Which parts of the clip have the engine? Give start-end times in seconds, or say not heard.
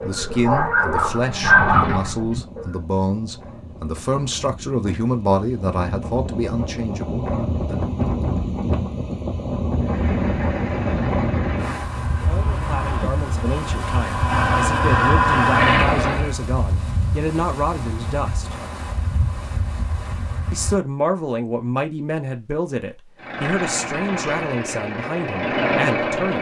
0.0-2.2, 9.8-16.4, 23.1-26.3.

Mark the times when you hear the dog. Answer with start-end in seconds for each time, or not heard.
0.0-2.6.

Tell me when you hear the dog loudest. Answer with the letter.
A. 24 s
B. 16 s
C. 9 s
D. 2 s
D.